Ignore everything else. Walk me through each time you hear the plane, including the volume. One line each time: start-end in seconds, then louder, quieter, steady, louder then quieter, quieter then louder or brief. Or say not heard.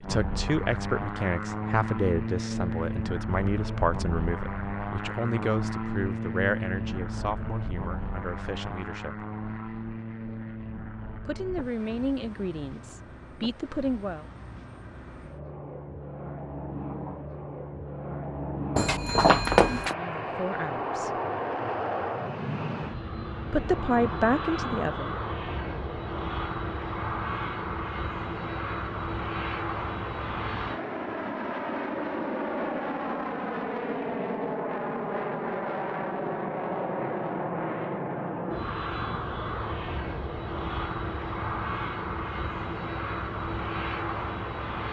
0.0-44.8 quieter then louder.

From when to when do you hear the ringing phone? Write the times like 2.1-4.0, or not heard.
18.8-19.9.